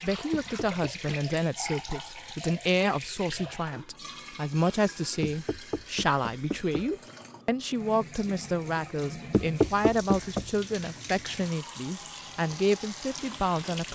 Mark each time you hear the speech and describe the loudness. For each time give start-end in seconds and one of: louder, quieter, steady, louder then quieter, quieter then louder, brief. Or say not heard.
0.0-13.9 steady.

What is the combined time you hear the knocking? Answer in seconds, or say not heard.
4 s.